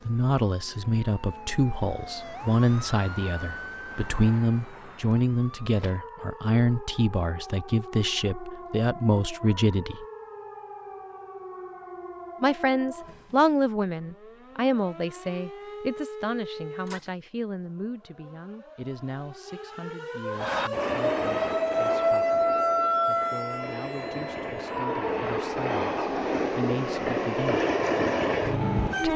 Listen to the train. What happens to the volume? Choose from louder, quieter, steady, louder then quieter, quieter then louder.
quieter then louder.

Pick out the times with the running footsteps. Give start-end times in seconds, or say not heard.
not heard.